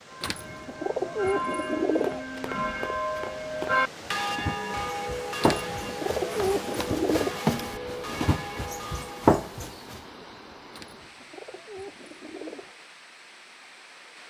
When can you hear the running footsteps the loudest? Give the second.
9 s.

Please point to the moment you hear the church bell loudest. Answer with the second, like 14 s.
4 s.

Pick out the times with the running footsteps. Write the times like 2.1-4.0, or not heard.
1.9-10.0.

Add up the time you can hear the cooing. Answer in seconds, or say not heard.
6 s.